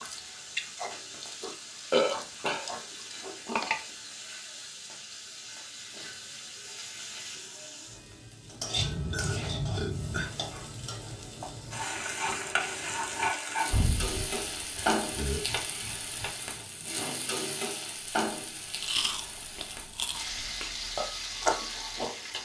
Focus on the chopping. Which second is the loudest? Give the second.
14 s.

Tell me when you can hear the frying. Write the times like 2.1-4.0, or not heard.
0.0-22.4.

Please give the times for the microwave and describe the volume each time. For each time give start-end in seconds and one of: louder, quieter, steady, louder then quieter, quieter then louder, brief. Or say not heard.
not heard.